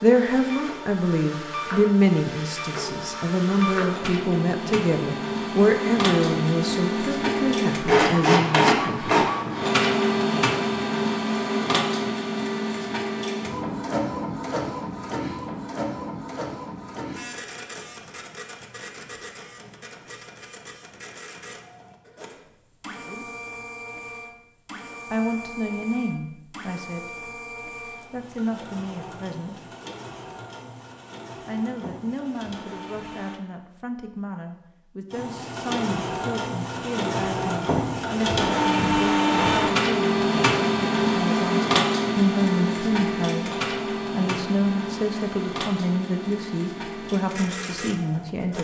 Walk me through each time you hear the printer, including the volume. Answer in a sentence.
You can hear the printer from 0.0 to 33.4 s, getting louder then quieter; and from 35.1 to 48.5 s, getting louder then quieter.